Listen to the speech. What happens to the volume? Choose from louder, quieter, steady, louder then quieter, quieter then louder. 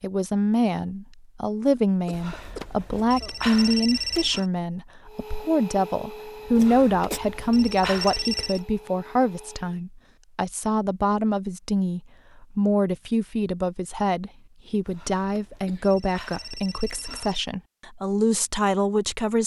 steady.